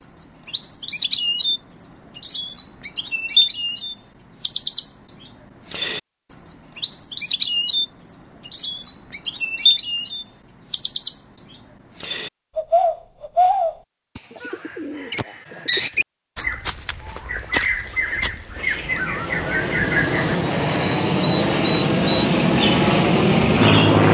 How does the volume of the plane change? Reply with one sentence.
The volume of the plane goes up.